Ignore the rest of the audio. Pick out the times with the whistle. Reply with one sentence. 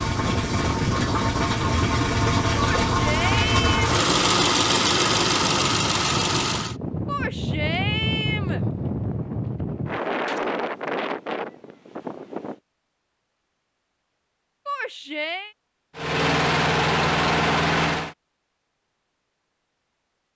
You can't hear the whistle here.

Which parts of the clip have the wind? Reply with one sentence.
You can hear the wind from 0.0 to 12.6 s.